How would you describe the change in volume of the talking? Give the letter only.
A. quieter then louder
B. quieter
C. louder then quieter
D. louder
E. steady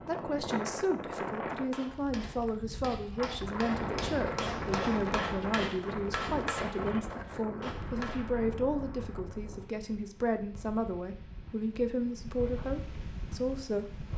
E.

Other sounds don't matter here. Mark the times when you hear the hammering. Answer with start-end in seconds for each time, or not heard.
1.5-8.3.